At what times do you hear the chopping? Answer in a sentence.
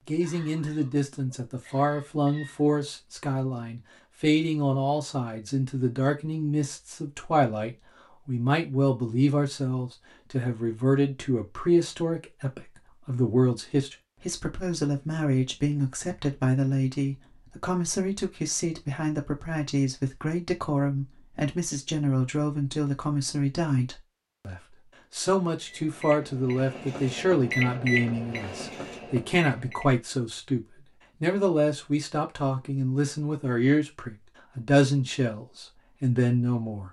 You can't hear the chopping here.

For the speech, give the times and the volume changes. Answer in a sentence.
You can hear the speech from 0.1 to 36.8 s, at a steady volume.